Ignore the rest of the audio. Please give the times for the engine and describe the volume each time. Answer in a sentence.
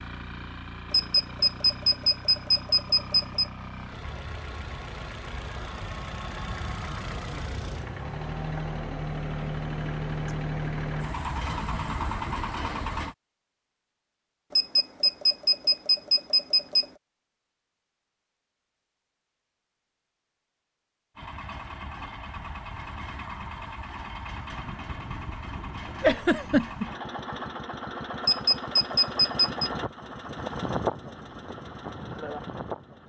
You can hear the engine from 0.0 to 13.2 s, getting louder; and from 21.1 to 33.0 s, getting louder.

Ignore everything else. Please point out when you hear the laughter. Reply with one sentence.
You can hear the laughter from 26.0 to 26.9 s.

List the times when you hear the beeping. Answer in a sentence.
You can hear the beeping from 0.9 to 3.5 s, from 14.5 to 16.9 s and from 28.2 to 29.7 s.